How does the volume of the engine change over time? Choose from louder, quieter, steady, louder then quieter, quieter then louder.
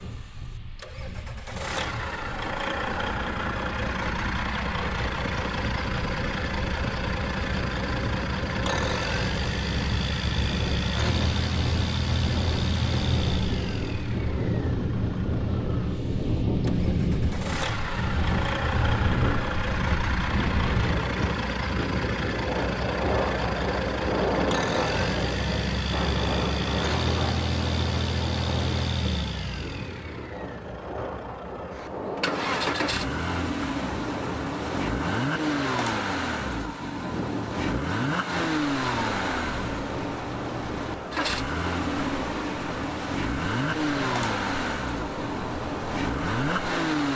steady.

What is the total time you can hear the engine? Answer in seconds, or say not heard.
47 s.